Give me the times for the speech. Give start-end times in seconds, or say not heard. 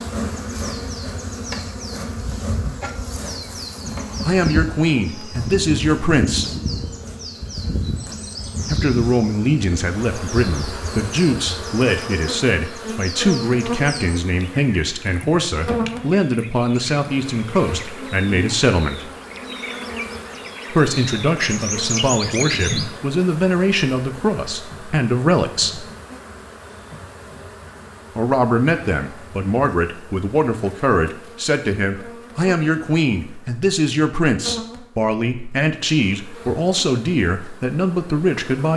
4.2-6.5, 8.7-19.1, 20.7-25.9, 28.1-38.7.